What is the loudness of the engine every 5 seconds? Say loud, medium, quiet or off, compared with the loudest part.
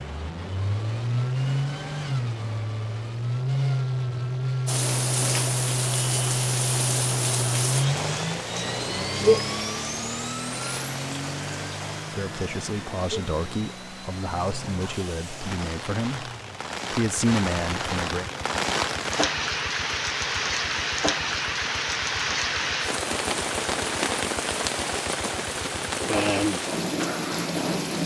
loud, loud, medium, quiet, quiet, medium.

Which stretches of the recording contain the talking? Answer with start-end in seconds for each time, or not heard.
12.1-16.3, 16.9-18.2.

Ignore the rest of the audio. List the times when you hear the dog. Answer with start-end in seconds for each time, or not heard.
not heard.